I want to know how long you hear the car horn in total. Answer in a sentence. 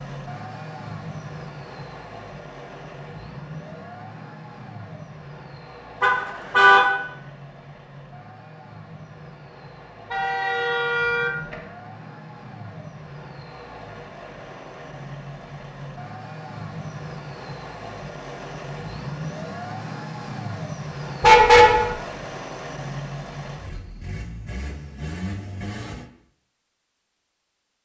The car horn can be heard for 3 seconds in total.